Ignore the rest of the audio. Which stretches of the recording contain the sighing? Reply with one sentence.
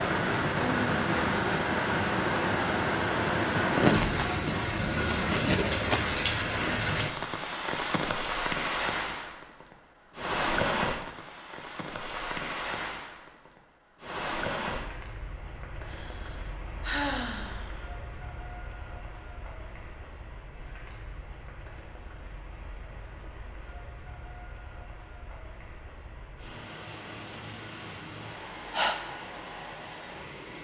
You can hear the sighing from 3.6 to 6.2 s, from 15.8 to 17.9 s and from 28.3 to 28.9 s.